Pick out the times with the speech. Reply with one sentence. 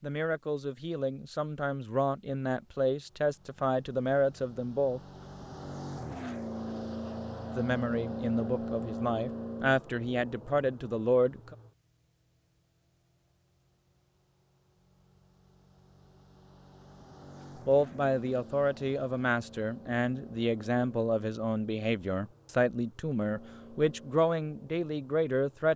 You can hear the speech from 0.0 to 5.0 s, from 7.5 to 11.6 s and from 17.6 to 25.7 s.